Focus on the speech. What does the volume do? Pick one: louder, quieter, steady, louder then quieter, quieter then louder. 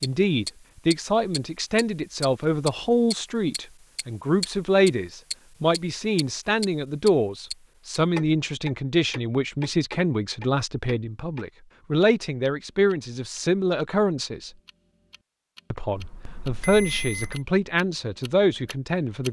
steady.